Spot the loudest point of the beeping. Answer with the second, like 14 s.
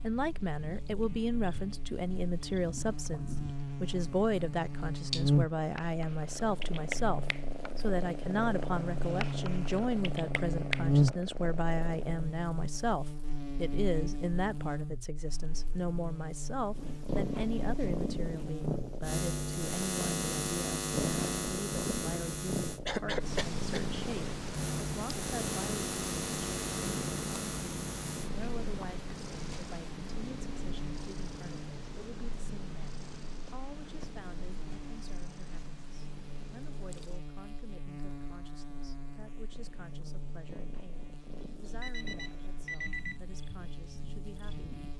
43 s.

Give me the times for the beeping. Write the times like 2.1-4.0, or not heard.
41.6-43.2.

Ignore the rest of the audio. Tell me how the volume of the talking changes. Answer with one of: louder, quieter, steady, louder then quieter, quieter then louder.
quieter.